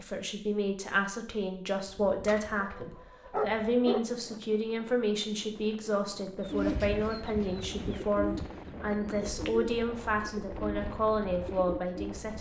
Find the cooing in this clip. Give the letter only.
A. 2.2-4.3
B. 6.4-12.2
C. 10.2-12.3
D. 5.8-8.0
B.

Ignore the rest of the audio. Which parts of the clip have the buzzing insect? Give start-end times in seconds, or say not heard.
not heard.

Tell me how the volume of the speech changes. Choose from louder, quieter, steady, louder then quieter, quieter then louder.
steady.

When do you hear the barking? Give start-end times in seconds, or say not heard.
2.2-4.3.